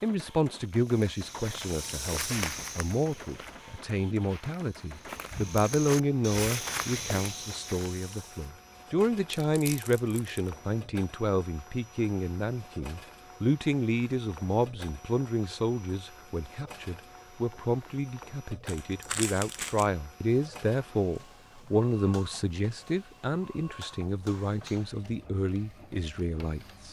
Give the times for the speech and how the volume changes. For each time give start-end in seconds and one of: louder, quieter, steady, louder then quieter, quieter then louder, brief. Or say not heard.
0.0-26.8 steady.